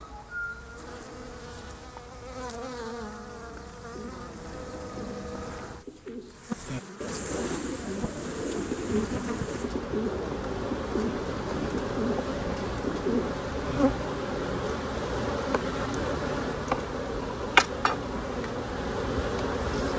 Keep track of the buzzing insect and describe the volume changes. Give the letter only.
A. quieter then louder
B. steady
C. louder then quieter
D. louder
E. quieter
D.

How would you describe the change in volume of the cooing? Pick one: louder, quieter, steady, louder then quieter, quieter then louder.
louder.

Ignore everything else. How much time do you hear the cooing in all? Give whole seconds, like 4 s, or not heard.
10 s.